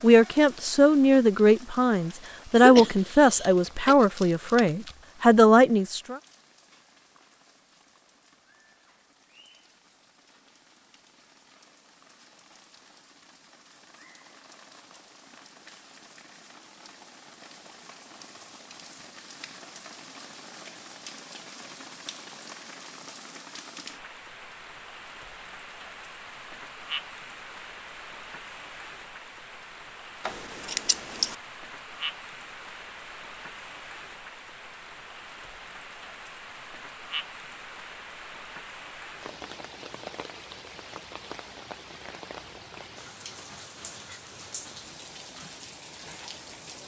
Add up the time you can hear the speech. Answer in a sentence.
You can hear the speech for 6 seconds altogether.